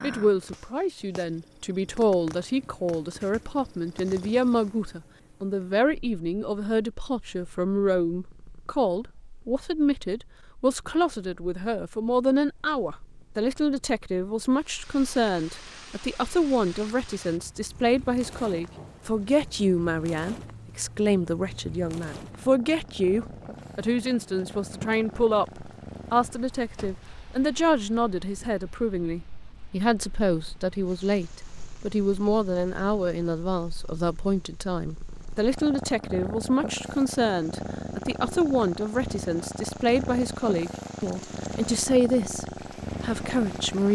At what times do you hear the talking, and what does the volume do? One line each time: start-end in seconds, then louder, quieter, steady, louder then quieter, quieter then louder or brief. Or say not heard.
0.0-43.9 steady.